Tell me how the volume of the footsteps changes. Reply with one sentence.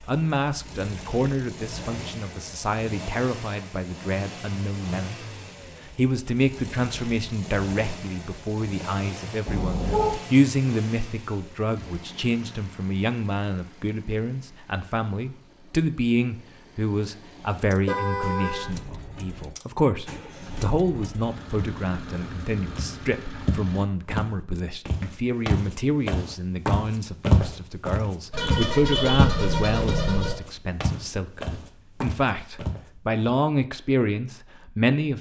The loudness of the footsteps goes up, then down.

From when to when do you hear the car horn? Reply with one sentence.
You can hear the car horn from 9.4 to 10.2 s, from 17.6 to 18.6 s and from 28.3 to 30.4 s.